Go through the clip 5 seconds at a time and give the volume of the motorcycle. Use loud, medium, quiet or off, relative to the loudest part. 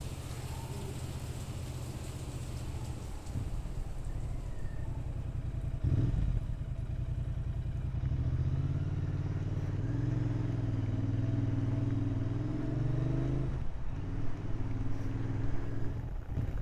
medium, loud, loud, medium.